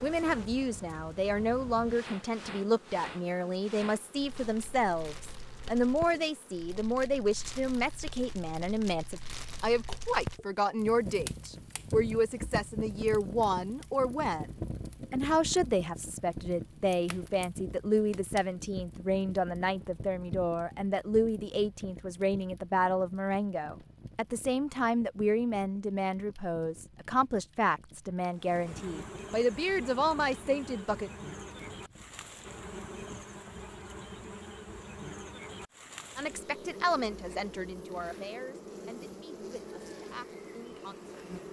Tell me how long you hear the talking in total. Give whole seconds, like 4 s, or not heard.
36 s.